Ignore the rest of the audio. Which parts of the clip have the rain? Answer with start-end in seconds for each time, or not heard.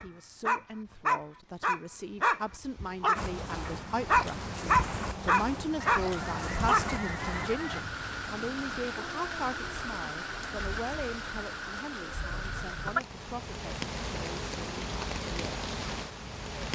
3.1-16.6.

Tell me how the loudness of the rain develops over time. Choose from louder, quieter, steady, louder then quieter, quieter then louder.
steady.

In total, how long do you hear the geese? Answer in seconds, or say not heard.
2 s.